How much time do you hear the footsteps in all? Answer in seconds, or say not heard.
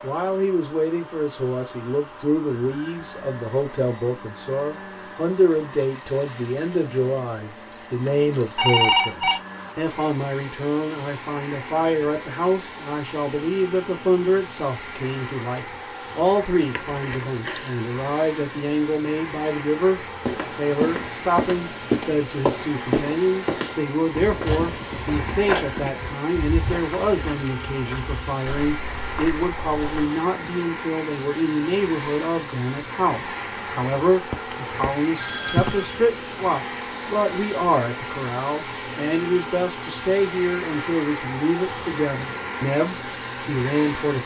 10 s.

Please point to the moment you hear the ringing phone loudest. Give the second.
9 s.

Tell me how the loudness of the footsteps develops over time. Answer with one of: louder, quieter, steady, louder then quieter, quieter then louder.
quieter.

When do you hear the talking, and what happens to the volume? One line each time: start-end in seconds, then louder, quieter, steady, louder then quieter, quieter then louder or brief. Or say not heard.
0.0-44.2 steady.